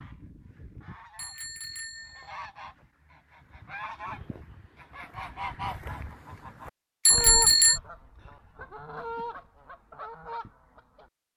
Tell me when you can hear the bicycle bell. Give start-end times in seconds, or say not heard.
1.1-2.4, 7.0-7.8.